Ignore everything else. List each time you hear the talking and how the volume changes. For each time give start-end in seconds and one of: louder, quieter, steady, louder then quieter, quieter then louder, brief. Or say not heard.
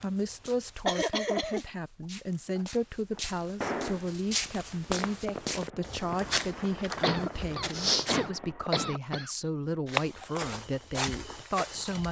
0.0-12.0 steady.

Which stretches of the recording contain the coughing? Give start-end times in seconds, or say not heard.
0.8-1.6, 7.0-9.3.